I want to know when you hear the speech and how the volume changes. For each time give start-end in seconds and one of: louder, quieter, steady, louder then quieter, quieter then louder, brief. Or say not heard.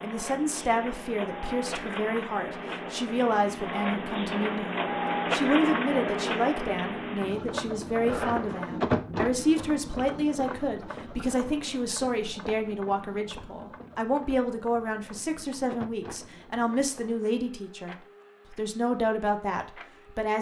0.0-20.3 steady.